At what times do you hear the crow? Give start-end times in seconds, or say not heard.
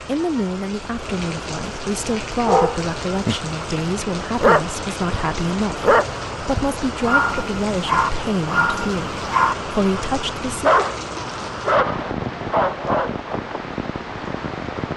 not heard.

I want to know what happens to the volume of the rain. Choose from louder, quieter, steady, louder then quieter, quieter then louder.
steady.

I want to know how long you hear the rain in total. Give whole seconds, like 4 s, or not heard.
15 s.